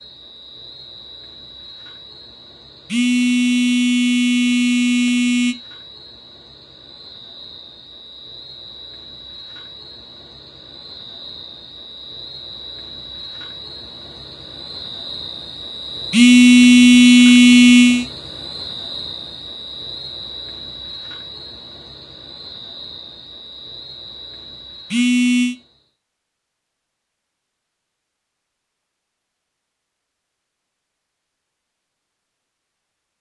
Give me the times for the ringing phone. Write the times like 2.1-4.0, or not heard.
2.9-5.5, 16.1-18.1, 24.9-25.6.